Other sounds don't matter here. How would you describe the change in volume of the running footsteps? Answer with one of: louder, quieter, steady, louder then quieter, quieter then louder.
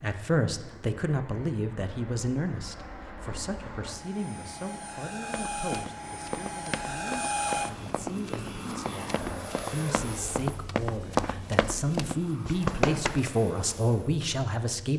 louder.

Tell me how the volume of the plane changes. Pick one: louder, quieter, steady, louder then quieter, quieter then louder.
louder then quieter.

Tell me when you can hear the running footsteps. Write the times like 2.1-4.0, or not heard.
5.3-13.3.